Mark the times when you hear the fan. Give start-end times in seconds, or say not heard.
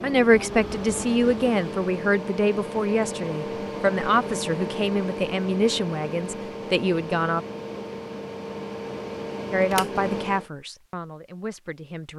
0.0-10.5.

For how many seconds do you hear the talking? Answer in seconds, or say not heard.
10 s.